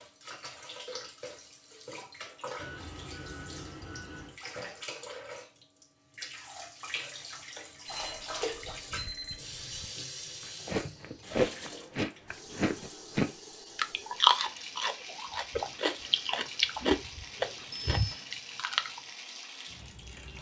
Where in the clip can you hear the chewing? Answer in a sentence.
You can hear the chewing from 10.4 to 19.0 s.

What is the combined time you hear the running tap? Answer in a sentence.
The running tap can be heard for 20 seconds in total.